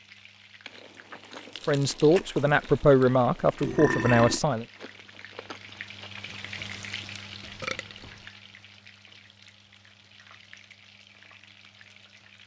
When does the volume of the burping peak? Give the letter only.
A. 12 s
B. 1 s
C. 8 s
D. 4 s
D.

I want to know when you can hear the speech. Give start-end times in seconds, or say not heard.
1.6-4.7.